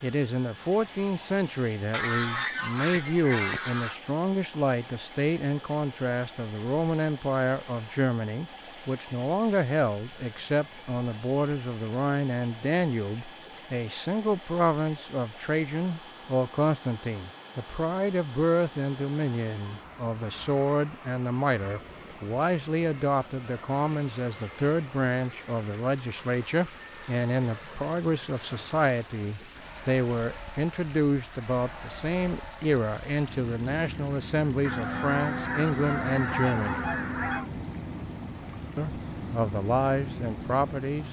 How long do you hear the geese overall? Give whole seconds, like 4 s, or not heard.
5 s.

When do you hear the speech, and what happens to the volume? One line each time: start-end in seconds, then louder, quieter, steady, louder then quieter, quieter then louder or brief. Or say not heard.
0.0-36.9 steady
38.8-41.0 brief.